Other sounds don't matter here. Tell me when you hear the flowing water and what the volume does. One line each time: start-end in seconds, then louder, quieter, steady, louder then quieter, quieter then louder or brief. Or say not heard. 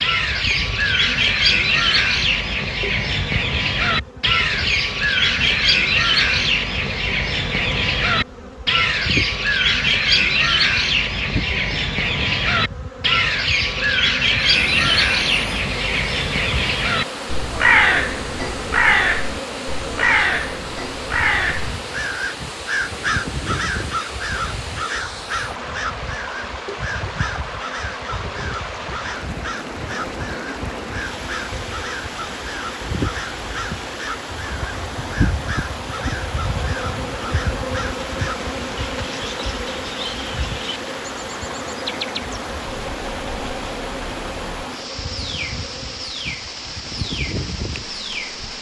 14.6-48.5 steady.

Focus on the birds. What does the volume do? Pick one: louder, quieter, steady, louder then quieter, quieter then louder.
quieter.